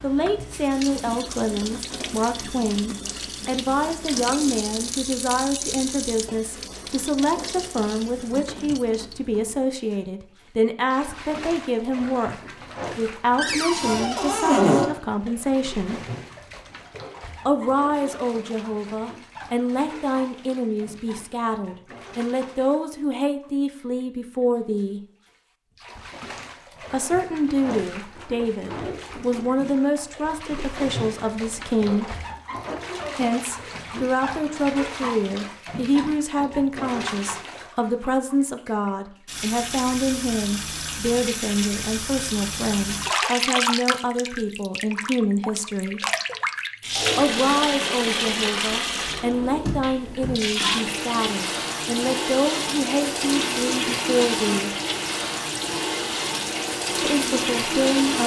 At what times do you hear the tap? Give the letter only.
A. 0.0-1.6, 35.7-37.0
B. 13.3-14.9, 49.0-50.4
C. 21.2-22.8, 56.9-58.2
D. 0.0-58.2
D.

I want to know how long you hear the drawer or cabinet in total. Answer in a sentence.
You can hear the drawer or cabinet for 3 seconds altogether.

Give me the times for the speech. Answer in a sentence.
The speech can be heard from 0.0 to 16.1 s, from 17.4 to 25.0 s, from 26.9 to 32.1 s, from 33.1 to 46.0 s, from 47.1 to 54.7 s and from 57.0 to 58.2 s.